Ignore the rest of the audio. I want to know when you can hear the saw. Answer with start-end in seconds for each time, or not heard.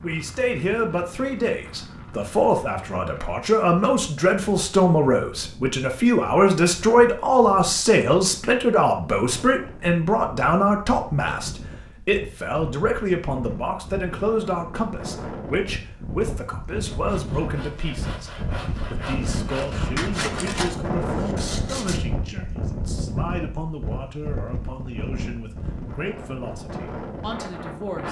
16.9-22.0.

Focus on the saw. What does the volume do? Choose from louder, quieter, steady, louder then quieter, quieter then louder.
louder then quieter.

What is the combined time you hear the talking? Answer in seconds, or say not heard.
28 s.